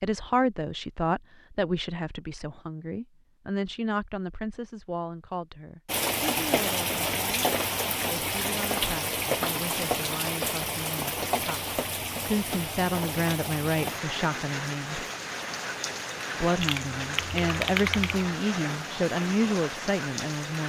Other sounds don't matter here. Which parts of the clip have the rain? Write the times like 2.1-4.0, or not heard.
5.8-20.6.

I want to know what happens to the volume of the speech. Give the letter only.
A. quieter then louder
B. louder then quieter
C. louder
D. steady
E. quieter
A.